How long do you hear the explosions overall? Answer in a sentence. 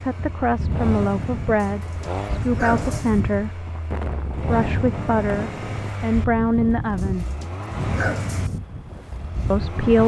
You can hear the explosions for 2 seconds altogether.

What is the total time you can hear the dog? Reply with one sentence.
The dog can be heard for 3 seconds in total.